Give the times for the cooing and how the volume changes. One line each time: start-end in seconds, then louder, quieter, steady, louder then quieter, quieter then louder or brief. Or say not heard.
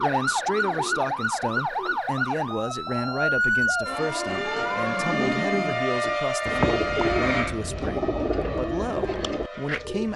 0.1-10.1 louder.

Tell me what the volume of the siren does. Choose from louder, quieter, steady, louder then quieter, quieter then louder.
quieter.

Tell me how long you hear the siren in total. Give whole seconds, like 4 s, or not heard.
10 s.